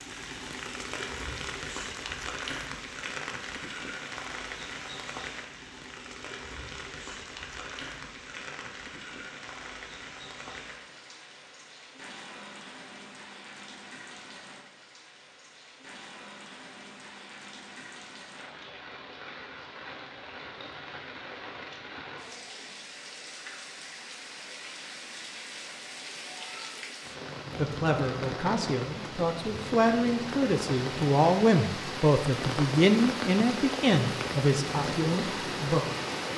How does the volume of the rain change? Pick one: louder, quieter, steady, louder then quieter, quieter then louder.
quieter then louder.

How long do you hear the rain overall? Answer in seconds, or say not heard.
36 s.